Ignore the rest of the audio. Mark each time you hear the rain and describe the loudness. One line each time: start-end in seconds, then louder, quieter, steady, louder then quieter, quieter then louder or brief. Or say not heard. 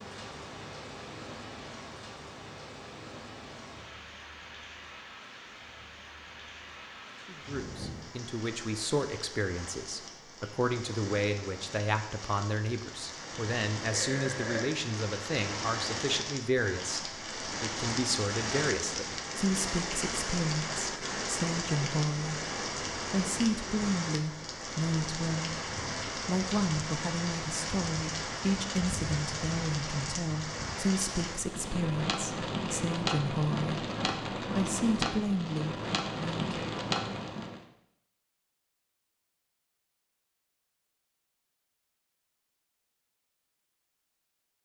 0.0-37.6 louder.